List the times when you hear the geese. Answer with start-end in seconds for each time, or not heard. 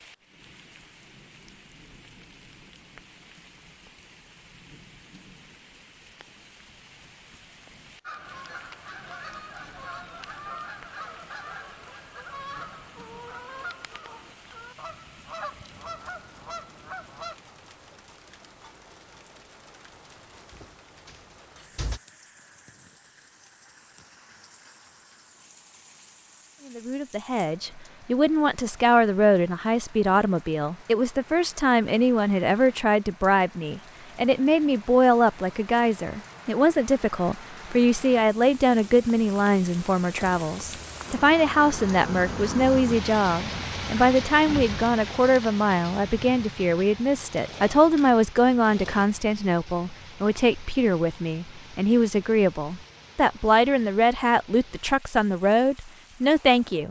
8.0-17.4.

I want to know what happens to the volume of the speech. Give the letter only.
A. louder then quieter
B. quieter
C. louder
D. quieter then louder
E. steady
E.